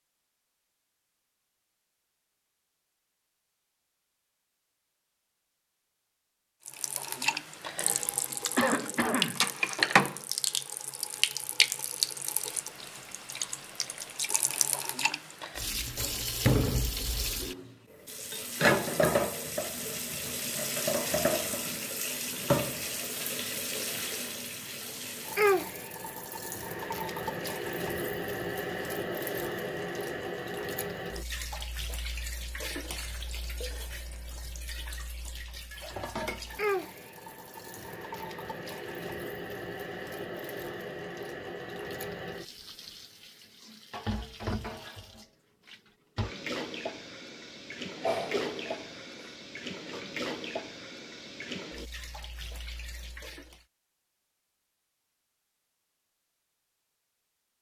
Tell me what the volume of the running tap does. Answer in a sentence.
The loudness of the running tap goes down.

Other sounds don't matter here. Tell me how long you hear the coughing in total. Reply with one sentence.
You can hear the coughing for 2 seconds altogether.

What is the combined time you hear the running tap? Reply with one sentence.
The running tap can be heard for 47 seconds in total.